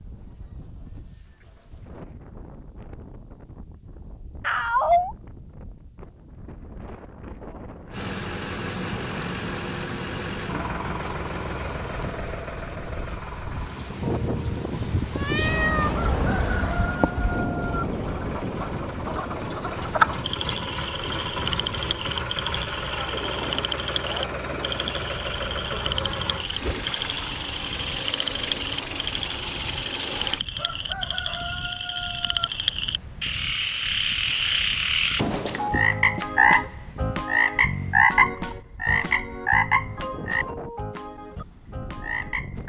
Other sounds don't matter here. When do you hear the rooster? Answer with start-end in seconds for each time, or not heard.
15.9-17.9, 30.6-32.5.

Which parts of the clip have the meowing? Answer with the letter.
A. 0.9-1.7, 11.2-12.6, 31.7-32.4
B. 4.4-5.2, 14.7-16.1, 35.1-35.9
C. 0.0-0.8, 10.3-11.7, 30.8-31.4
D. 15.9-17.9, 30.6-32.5
B.